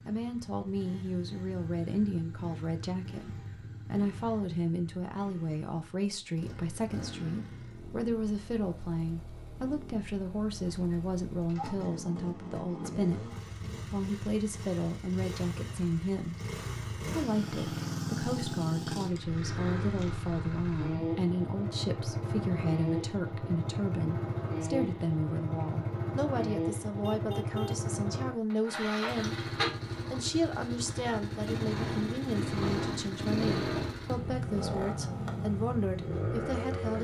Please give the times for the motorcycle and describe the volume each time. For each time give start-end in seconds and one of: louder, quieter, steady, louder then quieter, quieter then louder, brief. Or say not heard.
0.0-36.9 louder.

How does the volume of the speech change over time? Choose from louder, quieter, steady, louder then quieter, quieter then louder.
steady.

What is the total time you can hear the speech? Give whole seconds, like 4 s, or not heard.
37 s.